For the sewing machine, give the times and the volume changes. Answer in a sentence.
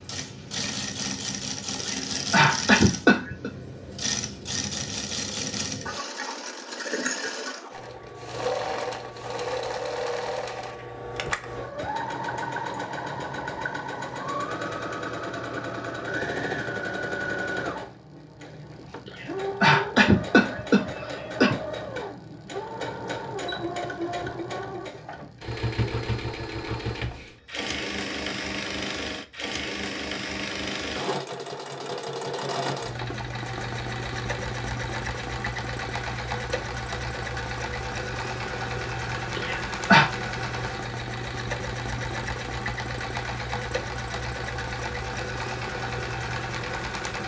The sewing machine can be heard from 0.0 to 47.2 s, at a steady volume.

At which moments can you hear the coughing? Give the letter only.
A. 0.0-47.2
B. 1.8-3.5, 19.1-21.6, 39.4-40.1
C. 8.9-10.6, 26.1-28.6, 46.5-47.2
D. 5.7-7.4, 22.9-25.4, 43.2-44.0
B.